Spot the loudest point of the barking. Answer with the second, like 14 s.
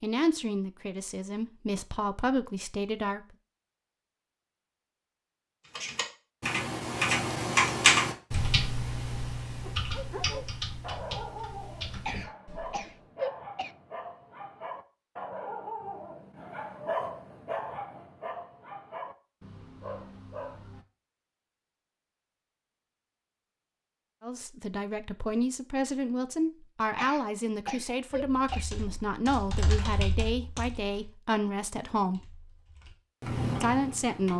17 s.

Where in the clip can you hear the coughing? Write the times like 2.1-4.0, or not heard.
12.1-13.7, 26.9-28.6.